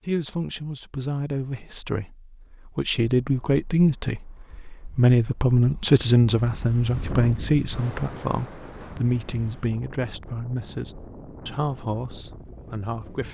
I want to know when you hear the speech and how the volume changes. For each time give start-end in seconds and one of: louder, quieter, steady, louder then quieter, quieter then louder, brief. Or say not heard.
0.1-13.3 louder then quieter.